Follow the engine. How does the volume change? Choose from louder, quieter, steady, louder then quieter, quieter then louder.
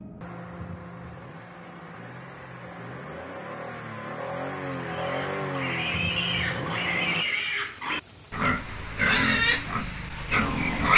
louder.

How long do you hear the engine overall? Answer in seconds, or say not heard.
7 s.